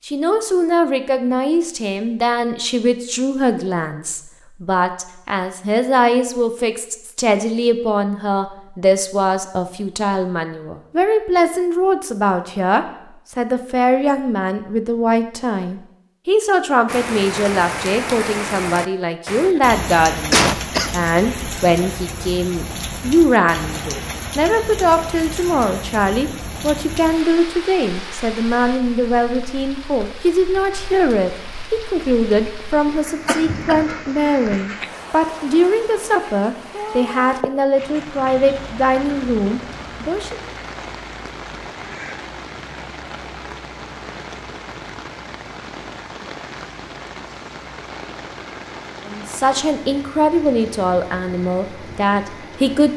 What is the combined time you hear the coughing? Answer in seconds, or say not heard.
2 s.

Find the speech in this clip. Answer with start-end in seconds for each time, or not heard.
0.1-40.4, 49.0-52.9.